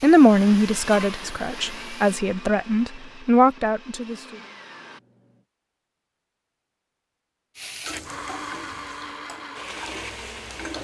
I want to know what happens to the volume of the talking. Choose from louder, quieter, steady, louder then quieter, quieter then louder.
quieter then louder.